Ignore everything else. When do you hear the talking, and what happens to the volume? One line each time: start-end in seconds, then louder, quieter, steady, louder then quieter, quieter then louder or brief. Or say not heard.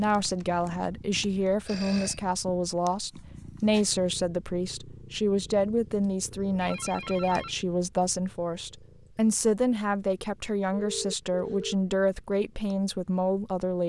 0.0-13.8 steady.